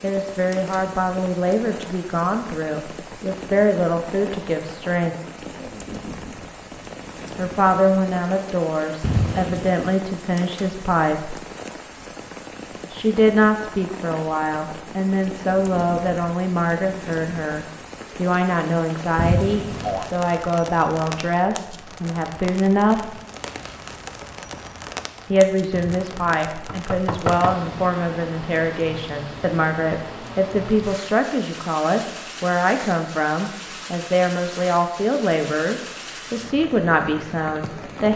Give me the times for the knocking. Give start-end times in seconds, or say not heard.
9.0-9.8, 19.1-20.1, 25.7-27.6.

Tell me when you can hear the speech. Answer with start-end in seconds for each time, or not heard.
0.0-5.2, 7.3-11.4, 12.9-23.1, 25.3-38.1.